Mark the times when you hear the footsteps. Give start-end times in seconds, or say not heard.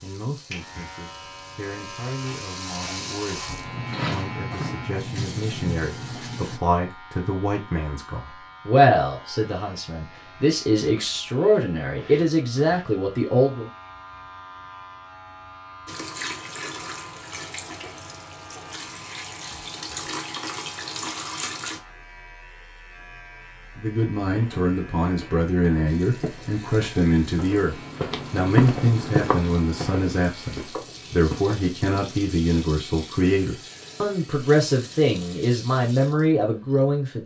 24.2-32.2.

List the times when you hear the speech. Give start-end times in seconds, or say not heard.
0.0-13.7, 23.8-37.2.